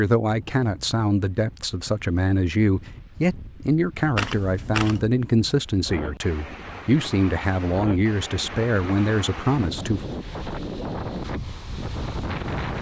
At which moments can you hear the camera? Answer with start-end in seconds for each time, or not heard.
4.2-5.0.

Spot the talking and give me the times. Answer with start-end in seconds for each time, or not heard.
0.0-10.1.